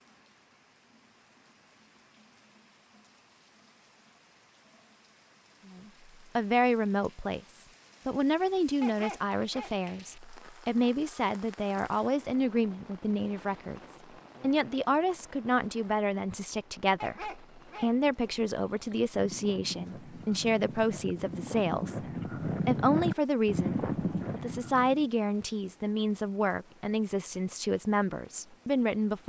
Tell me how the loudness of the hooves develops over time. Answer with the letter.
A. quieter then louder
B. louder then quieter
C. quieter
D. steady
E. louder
E.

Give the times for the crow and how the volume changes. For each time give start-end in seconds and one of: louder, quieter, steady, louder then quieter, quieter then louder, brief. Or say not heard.
not heard.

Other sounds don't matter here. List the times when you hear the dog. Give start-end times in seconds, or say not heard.
8.8-9.8, 17.0-17.9.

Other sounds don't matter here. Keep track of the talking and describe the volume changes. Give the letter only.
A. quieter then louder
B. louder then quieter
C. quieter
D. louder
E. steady
E.